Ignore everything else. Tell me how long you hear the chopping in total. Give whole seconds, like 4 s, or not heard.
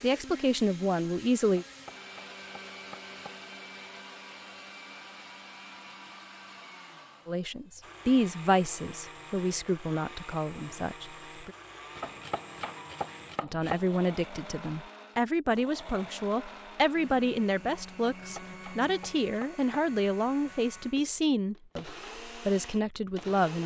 5 s.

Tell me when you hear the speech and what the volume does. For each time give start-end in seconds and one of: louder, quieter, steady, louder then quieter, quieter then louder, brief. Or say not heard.
0.0-1.6 brief
7.2-11.5 quieter
13.4-23.6 steady.